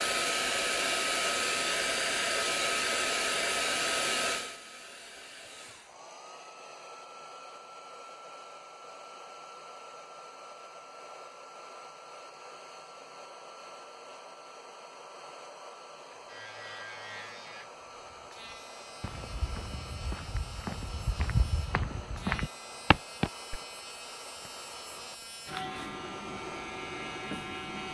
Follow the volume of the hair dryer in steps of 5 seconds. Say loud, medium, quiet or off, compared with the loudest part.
loud, quiet, quiet, quiet, quiet, quiet.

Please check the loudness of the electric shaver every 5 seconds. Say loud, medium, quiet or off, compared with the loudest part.
off, off, off, medium, medium, loud.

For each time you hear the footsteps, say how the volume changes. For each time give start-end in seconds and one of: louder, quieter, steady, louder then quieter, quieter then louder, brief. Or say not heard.
19.0-23.6 louder.